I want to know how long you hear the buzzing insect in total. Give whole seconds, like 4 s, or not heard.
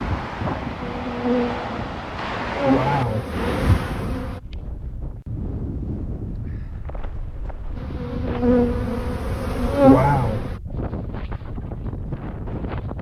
7 s.